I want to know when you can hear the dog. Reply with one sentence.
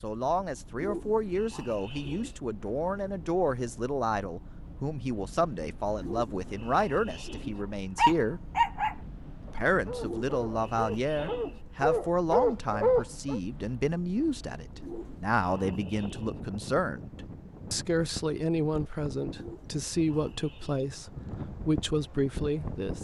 The dog can be heard from 8.0 to 13.4 s.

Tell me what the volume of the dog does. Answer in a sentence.
The loudness of the dog goes down, then up.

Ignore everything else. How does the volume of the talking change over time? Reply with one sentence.
The loudness of the talking stays about the same.